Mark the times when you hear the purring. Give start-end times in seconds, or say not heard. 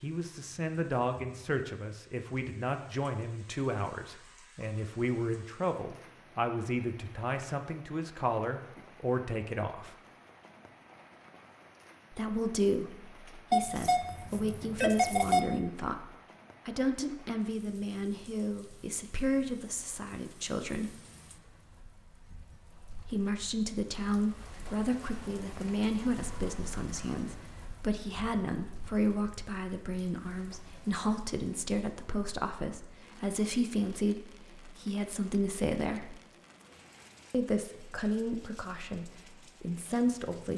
not heard.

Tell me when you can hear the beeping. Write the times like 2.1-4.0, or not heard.
13.5-15.4.